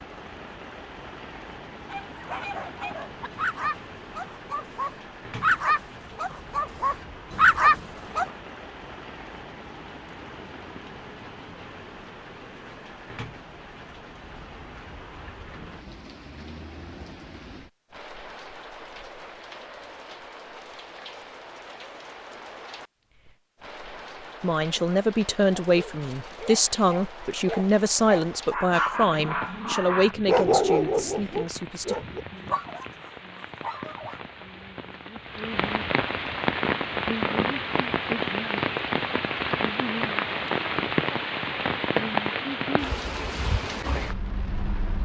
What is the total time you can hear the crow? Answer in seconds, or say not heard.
not heard.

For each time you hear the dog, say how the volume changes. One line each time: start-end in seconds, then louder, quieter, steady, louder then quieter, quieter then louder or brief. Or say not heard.
1.9-8.2 louder
25.6-34.2 louder then quieter.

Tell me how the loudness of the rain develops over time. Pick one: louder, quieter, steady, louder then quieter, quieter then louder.
louder.